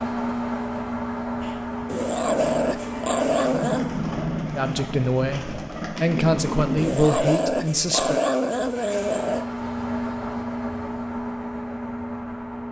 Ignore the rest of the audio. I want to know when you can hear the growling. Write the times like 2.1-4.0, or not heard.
1.9-4.0, 6.8-9.4.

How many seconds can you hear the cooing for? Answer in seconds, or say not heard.
6 s.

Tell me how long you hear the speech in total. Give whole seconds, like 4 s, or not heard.
4 s.